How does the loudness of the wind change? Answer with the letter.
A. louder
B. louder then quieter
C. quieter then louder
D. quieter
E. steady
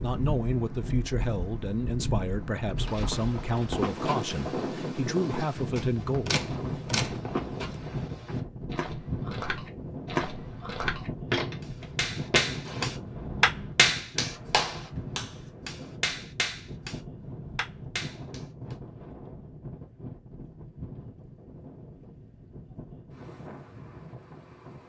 D.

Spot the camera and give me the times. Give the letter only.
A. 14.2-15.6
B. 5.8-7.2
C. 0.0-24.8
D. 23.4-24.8
B.